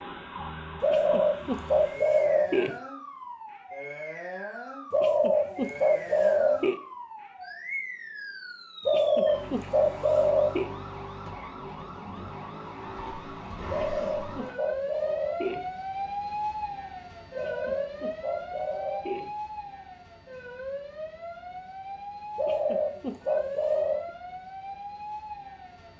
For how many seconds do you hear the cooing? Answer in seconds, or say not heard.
11 s.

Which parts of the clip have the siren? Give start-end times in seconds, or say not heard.
0.0-25.9.